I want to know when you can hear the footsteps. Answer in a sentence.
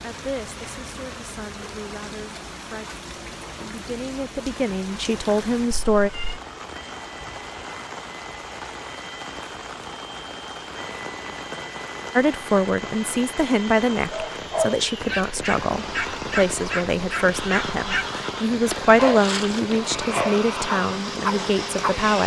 You can't hear the footsteps here.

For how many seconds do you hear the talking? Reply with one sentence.
The talking can be heard for 16 seconds in total.